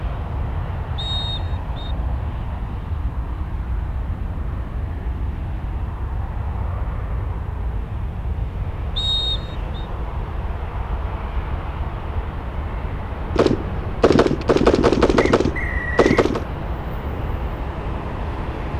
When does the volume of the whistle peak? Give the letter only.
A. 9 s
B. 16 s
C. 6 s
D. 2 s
A.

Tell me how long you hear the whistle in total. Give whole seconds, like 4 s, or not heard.
3 s.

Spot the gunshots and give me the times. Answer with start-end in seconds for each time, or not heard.
13.3-16.4.